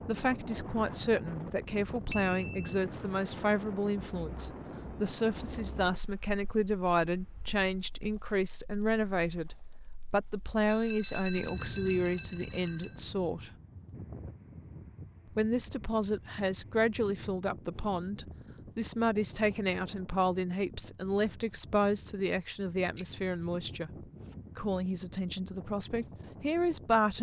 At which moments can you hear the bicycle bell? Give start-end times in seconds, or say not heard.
2.1-2.6, 10.6-13.0, 22.9-23.6.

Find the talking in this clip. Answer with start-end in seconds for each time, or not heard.
0.1-13.5, 15.3-23.9, 24.6-27.1.